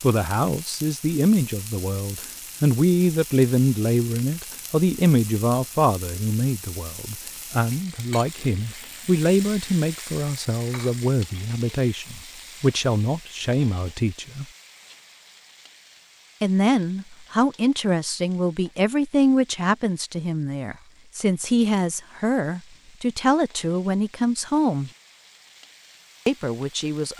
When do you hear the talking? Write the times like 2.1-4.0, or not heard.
0.0-14.4, 16.4-24.9, 26.2-27.1.